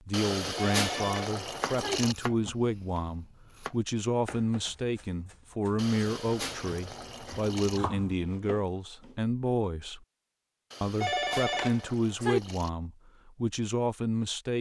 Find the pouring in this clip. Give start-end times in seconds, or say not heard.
0.1-2.1, 5.8-7.8, 10.7-12.7.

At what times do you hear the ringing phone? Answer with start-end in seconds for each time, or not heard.
0.6-2.0, 11.0-12.4.